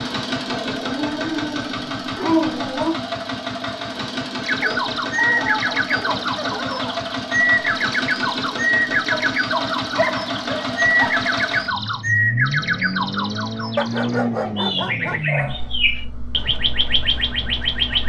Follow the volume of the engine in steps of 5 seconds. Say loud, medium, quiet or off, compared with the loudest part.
loud, loud, loud, medium.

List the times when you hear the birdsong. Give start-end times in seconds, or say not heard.
4.4-18.0.